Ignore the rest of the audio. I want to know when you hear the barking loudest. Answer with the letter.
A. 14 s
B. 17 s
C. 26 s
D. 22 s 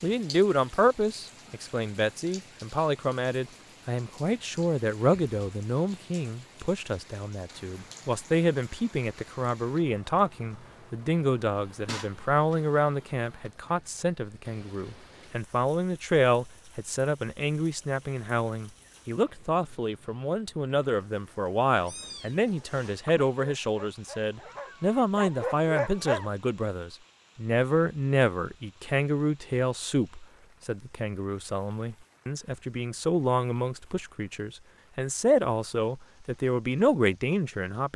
C.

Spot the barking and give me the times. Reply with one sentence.
You can hear the barking from 23.0 to 26.3 s.